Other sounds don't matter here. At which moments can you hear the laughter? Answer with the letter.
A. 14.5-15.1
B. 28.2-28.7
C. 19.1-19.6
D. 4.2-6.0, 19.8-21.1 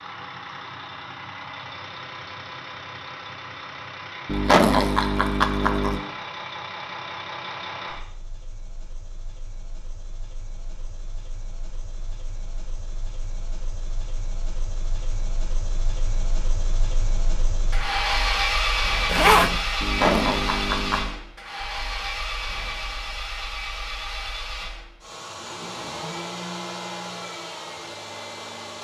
D.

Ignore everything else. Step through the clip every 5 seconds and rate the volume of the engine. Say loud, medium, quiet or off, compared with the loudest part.
medium, medium, quiet, loud, loud, medium.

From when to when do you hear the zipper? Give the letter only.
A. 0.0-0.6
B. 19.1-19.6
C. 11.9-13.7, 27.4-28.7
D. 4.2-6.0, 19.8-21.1
B.